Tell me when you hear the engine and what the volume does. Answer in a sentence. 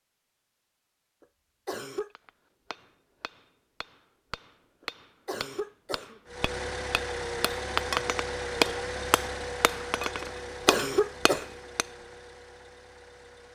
The engine can be heard from 6.2 to 13.5 s, getting quieter.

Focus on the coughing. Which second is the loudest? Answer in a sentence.
The volume of the coughing peaks at 11 seconds.